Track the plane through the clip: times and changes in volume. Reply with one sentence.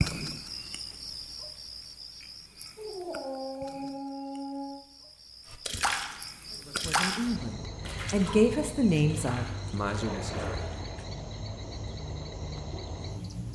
You can't hear the plane here.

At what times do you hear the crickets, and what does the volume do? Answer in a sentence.
The crickets can be heard from 0.0 to 13.5 s, getting quieter then louder.